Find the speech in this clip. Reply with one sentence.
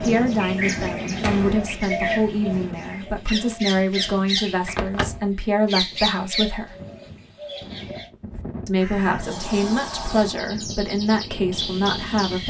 You can hear the speech from 0.0 to 6.8 s and from 8.7 to 12.4 s.